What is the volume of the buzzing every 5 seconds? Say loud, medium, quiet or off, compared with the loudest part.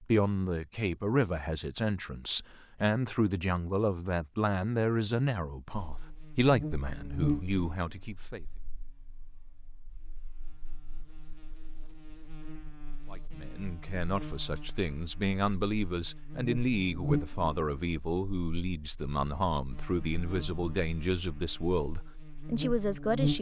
off, loud, quiet, loud, loud.